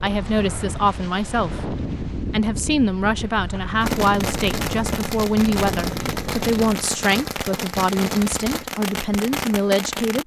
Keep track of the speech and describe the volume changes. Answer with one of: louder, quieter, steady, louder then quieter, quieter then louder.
steady.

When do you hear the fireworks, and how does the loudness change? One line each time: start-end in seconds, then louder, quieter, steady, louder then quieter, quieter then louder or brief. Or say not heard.
3.8-10.2 steady.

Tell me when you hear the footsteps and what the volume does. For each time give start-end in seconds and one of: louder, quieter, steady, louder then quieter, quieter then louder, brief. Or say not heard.
not heard.